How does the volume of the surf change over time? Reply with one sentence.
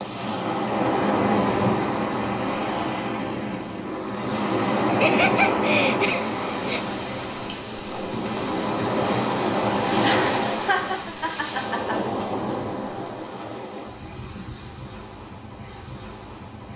The volume of the surf goes down.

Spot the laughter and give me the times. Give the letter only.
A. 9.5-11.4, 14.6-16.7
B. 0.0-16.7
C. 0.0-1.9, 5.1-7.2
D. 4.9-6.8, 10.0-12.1
D.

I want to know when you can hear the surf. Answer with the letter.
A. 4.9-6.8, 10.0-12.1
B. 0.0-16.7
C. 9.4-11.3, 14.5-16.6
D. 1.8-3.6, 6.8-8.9
B.